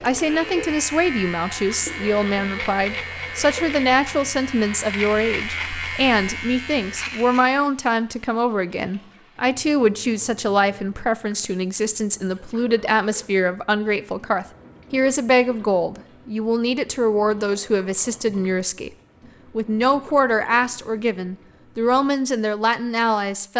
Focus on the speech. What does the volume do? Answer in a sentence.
The loudness of the speech stays about the same.